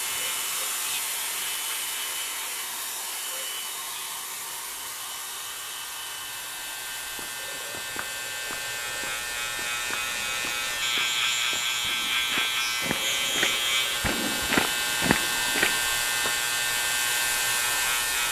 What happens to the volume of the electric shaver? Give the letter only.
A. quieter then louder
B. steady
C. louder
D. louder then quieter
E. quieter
C.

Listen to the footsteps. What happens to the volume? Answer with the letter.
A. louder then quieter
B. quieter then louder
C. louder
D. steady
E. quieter
C.